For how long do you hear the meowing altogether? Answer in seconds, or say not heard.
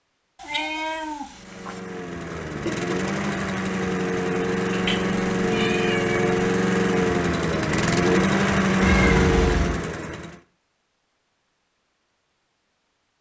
4 s.